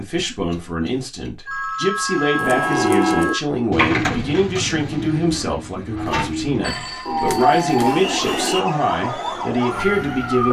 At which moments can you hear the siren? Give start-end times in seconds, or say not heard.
7.0-10.4.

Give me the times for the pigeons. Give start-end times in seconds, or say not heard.
2.4-8.6.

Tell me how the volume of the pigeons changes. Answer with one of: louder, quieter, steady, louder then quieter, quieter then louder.
quieter.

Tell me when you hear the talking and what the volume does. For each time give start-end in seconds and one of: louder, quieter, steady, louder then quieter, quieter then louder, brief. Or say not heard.
0.0-10.4 steady.